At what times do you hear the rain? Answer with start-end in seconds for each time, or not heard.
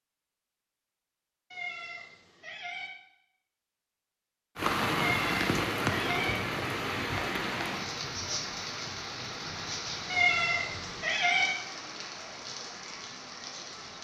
4.5-13.9.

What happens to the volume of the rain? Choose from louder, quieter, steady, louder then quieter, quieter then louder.
quieter.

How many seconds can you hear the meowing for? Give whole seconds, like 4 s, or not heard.
4 s.